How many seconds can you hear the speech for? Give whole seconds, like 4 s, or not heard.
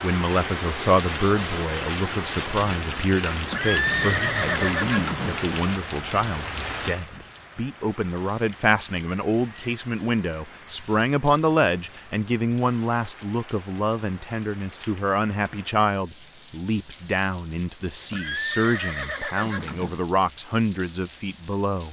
22 s.